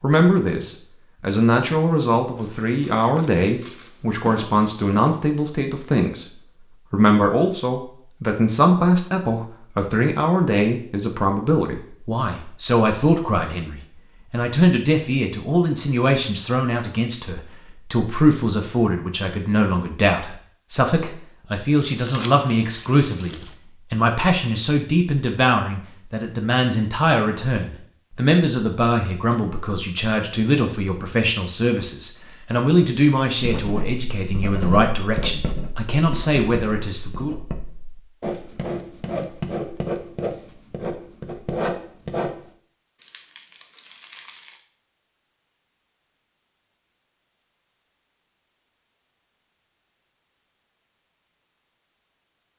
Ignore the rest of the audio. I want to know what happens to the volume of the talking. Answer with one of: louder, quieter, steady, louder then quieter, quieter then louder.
steady.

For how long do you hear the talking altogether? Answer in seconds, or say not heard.
37 s.